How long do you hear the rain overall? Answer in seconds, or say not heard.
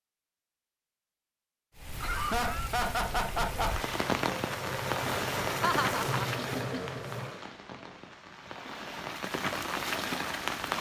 9 s.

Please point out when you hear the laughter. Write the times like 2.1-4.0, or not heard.
2.0-3.9, 5.6-7.2.